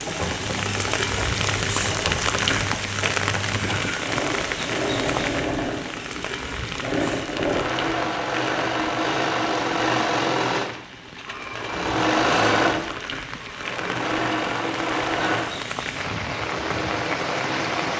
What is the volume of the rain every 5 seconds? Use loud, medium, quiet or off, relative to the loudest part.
loud, medium, medium, loud.